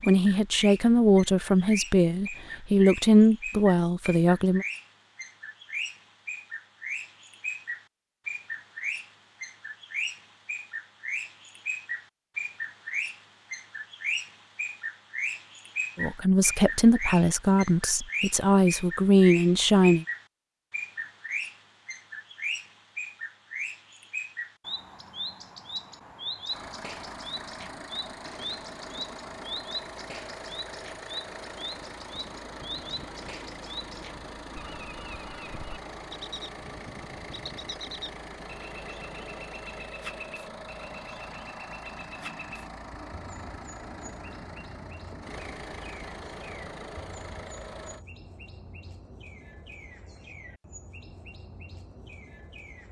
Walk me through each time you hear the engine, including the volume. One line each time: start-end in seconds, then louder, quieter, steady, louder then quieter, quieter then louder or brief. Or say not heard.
26.4-48.0 steady.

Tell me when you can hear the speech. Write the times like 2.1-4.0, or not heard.
0.1-4.7, 15.9-20.1.